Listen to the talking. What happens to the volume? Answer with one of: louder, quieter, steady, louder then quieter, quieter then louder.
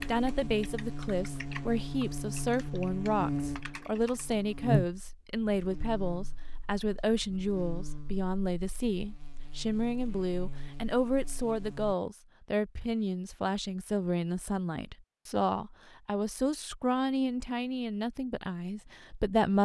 steady.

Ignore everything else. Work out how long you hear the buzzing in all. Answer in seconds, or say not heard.
12 s.